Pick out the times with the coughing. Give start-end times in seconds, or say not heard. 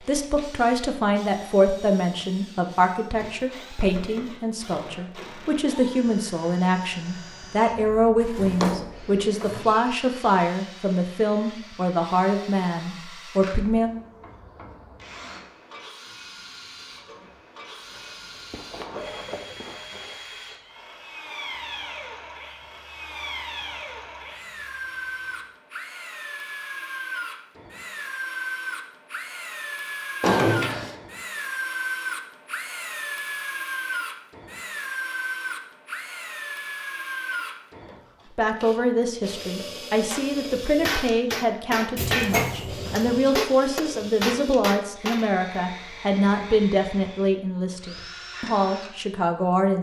not heard.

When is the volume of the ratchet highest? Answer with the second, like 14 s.
19 s.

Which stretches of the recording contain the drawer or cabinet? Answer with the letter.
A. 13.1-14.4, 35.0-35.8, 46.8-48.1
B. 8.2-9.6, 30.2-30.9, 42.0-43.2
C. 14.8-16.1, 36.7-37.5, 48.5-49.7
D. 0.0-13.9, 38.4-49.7
B.